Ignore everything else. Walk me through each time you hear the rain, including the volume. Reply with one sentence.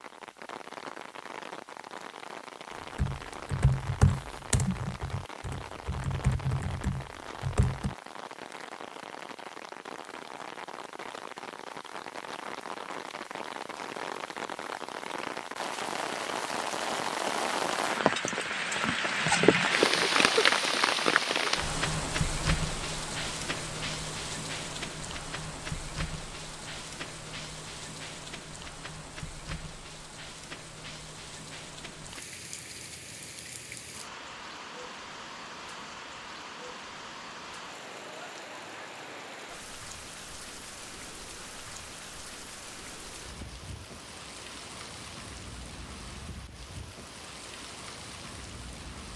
You can hear the rain from 0.0 to 49.1 s, getting louder then quieter.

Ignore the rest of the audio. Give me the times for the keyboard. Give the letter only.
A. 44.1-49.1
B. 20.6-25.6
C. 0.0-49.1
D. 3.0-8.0
D.